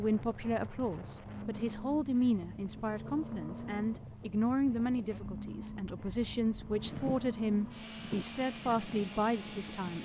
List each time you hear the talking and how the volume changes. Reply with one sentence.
The talking can be heard from 0.0 to 10.0 s, at a steady volume.